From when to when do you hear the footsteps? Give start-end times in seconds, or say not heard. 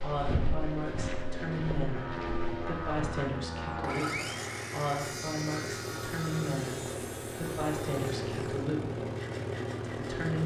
0.0-3.2.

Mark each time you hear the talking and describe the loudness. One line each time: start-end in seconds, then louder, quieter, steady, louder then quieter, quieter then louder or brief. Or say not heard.
0.0-9.1 steady
9.9-10.4 brief.